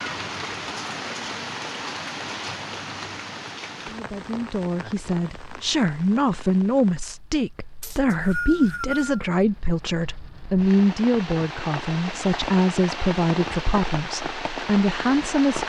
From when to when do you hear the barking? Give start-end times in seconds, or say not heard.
not heard.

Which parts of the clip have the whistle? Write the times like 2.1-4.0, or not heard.
7.8-9.2.